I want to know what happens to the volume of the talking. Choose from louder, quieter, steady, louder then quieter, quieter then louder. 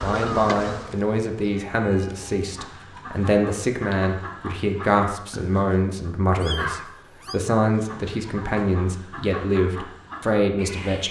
steady.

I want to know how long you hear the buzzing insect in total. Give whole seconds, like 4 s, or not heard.
2 s.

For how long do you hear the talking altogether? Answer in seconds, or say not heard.
11 s.